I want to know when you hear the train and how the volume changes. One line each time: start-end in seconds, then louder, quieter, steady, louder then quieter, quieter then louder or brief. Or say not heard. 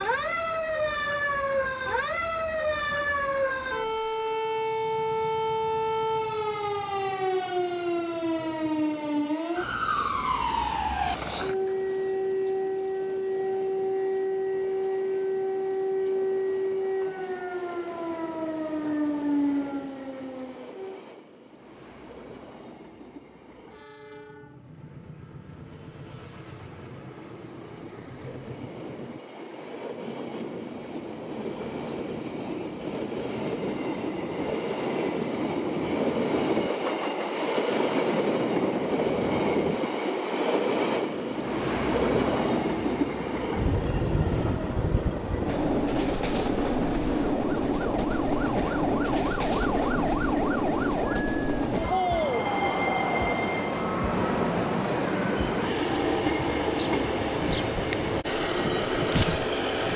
0.0-59.9 louder.